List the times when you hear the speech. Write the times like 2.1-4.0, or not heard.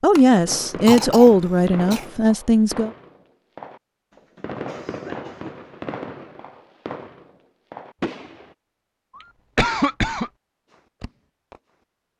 0.0-2.9.